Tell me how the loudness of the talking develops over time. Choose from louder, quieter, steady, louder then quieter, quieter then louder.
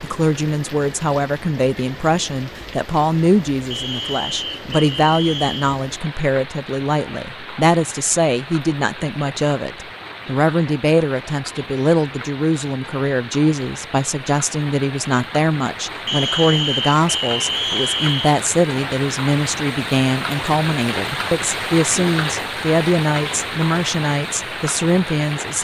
steady.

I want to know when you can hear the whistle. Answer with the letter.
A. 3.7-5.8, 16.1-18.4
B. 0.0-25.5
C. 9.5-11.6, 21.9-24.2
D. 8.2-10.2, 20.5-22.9
A.